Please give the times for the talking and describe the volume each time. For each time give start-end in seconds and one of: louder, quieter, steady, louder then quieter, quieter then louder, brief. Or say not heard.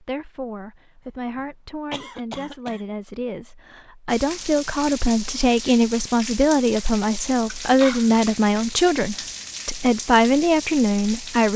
0.0-11.5 louder.